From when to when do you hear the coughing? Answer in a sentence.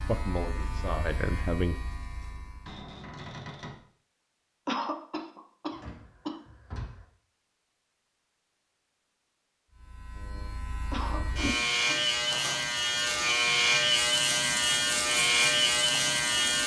The coughing can be heard from 4.7 to 6.4 s and from 10.9 to 12.0 s.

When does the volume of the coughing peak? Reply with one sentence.
The loudest moment of the coughing is at 5 seconds.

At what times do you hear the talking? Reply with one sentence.
The talking can be heard from 0.0 to 1.8 s.